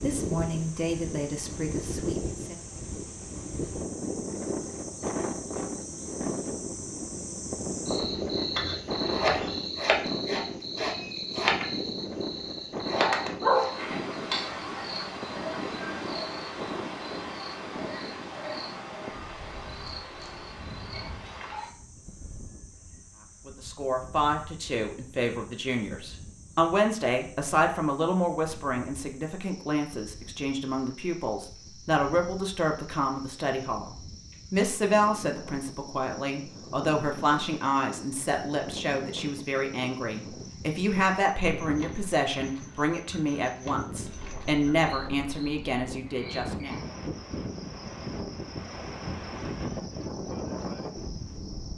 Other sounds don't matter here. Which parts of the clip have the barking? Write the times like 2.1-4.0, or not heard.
12.9-14.0.